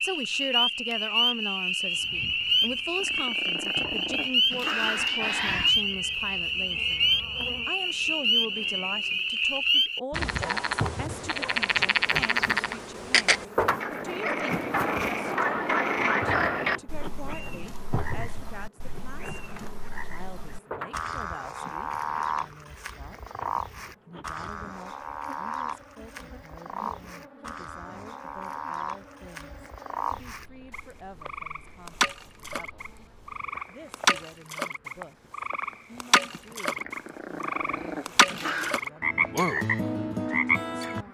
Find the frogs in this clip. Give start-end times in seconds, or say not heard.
0.0-41.0.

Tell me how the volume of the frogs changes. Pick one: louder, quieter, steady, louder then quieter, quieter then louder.
quieter then louder.